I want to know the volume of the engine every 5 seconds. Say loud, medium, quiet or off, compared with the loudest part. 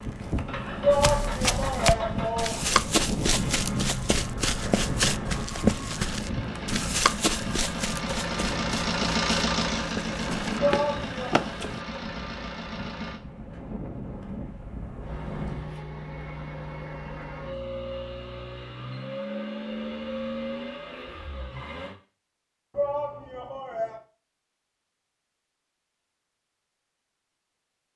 medium, loud, loud, medium, medium, off.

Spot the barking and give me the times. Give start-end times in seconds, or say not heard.
not heard.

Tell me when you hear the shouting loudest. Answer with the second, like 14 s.
1 s.